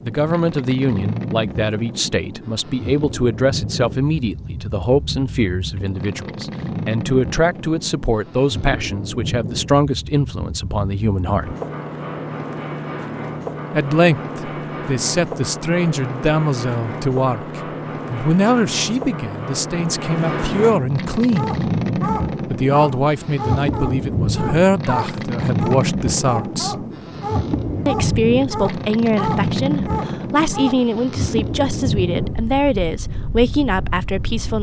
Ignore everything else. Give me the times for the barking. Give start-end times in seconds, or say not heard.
21.4-30.9.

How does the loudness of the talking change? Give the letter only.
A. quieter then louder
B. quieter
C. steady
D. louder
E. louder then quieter
C.